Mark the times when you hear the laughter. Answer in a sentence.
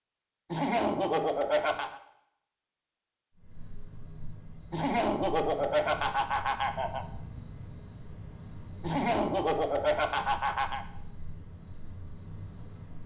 You can hear the laughter from 0.5 to 2.0 s, from 4.7 to 7.0 s and from 8.8 to 10.8 s.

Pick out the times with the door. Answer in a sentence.
The door can't be heard in this clip.